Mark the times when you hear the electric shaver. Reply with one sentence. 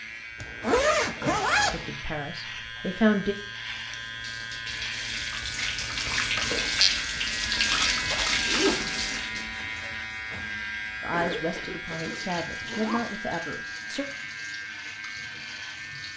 You can hear the electric shaver from 0.0 to 16.1 s.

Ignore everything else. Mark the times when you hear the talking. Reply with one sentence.
You can hear the talking from 1.7 to 3.4 s and from 11.0 to 14.1 s.